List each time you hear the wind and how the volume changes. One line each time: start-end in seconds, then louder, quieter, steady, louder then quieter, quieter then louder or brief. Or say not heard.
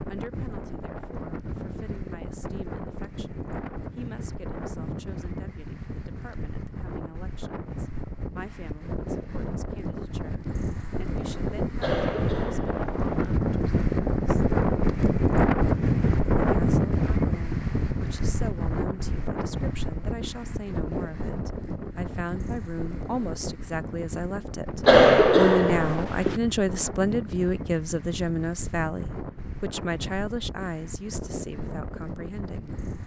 0.0-33.0 louder then quieter.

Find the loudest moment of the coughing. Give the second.
25 s.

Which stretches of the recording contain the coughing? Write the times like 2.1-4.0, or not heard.
11.8-13.3, 24.9-26.4.